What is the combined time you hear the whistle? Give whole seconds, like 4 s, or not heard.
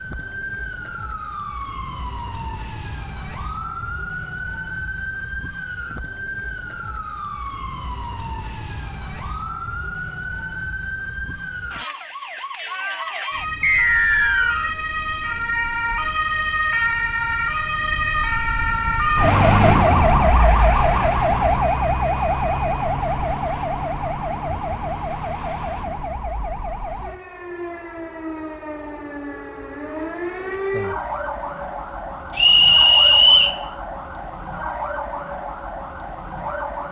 2 s.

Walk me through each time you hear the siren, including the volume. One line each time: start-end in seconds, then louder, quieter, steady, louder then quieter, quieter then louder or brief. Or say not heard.
0.0-36.8 louder then quieter.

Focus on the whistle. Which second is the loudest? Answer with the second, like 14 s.
33 s.